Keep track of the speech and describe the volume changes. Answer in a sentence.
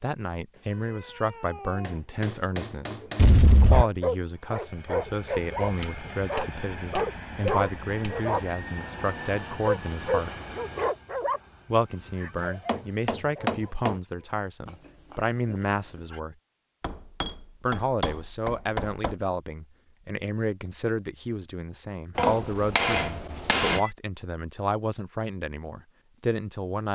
The volume of the speech stays about the same.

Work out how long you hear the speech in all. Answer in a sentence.
The speech can be heard for 24 seconds in total.